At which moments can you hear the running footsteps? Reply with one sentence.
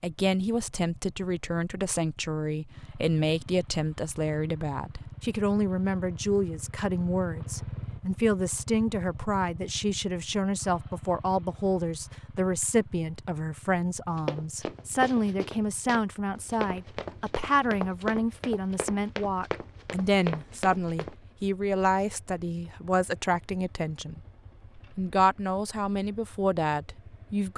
You can hear the running footsteps from 14.2 to 21.1 s.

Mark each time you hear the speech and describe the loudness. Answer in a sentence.
You can hear the speech from 0.0 to 24.2 s, at a steady volume; and briefly from 24.9 to 27.5 s.